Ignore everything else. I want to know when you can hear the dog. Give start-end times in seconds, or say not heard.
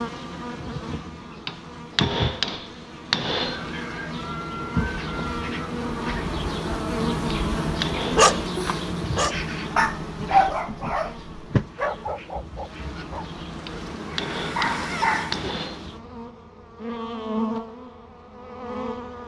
8.1-15.5.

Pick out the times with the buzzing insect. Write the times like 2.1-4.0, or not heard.
0.0-19.2.